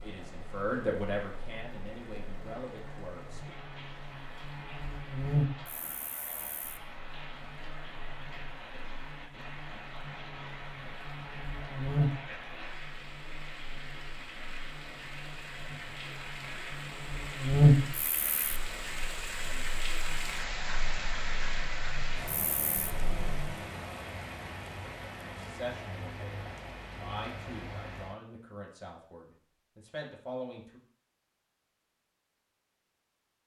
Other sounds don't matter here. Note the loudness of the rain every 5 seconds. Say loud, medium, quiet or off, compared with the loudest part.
medium, medium, medium, loud, loud, medium, off.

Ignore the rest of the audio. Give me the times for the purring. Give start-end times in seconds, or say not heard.
not heard.